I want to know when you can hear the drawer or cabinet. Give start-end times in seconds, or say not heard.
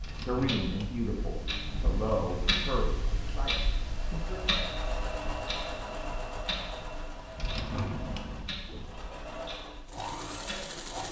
0.0-2.5, 7.3-9.1.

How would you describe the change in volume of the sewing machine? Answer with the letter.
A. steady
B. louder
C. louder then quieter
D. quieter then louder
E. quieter
D.